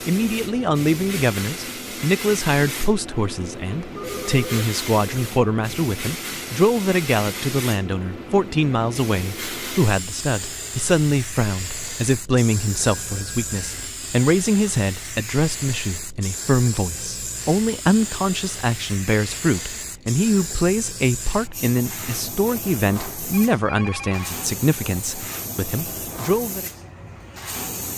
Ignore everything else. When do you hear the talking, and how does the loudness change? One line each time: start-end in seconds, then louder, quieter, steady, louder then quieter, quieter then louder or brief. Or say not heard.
0.1-26.6 steady.